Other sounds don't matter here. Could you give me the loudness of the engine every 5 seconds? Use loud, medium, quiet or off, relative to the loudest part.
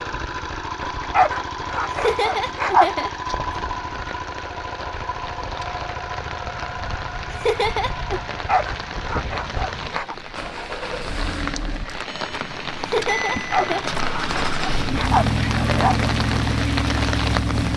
medium, medium, medium, loud.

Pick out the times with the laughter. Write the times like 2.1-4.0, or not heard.
1.9-3.5, 7.3-8.2, 12.8-13.9.